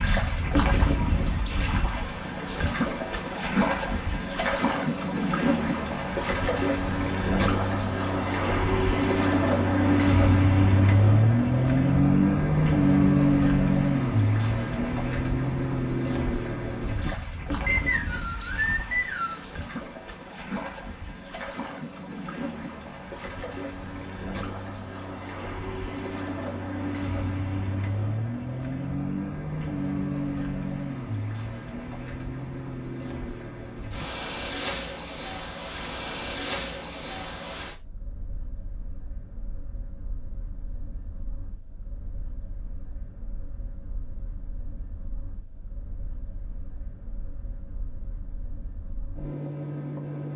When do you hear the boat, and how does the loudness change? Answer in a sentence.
The boat can be heard from 0.0 to 50.3 s, getting quieter.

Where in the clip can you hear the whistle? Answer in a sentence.
You can hear the whistle from 17.6 to 19.4 s.